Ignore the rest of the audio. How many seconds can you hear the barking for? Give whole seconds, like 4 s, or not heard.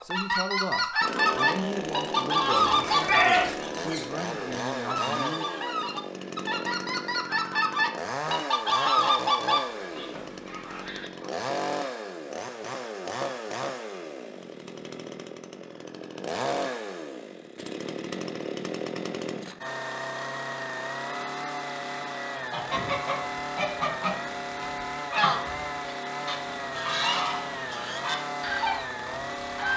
not heard.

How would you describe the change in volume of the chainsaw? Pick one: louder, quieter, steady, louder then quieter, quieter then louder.
steady.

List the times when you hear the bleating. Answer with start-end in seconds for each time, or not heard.
2.6-4.0.